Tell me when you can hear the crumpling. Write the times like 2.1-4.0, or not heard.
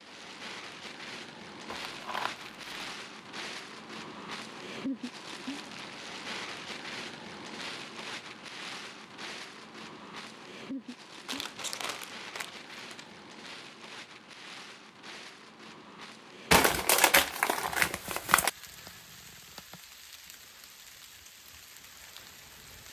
1.7-3.0, 11.2-13.1, 16.5-18.5.